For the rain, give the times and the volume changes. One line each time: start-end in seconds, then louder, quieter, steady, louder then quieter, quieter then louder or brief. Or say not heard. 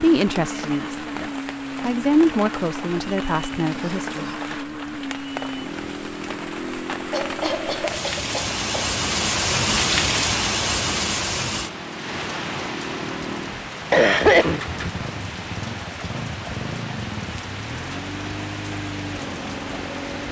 0.0-20.2 louder then quieter.